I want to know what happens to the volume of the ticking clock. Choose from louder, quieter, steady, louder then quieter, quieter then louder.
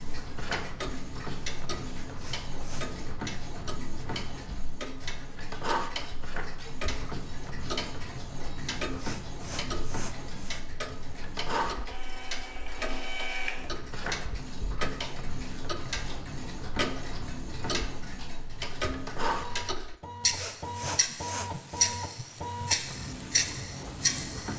louder.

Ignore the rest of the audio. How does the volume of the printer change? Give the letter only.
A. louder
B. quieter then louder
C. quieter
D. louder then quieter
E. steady
E.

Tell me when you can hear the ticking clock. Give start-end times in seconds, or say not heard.
0.0-24.5.